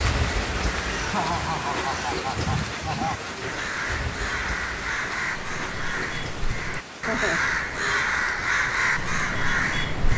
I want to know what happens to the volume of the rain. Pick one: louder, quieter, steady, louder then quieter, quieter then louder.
quieter.